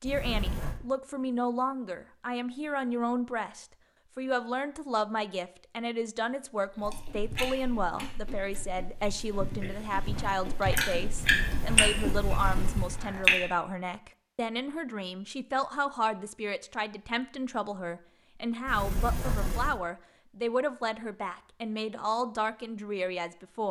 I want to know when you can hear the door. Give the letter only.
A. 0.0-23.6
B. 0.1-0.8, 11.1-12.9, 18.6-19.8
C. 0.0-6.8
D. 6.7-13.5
B.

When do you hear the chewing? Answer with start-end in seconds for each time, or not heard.
6.7-13.5.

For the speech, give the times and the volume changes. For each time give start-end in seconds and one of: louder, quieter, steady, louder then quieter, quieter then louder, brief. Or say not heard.
0.0-23.6 steady.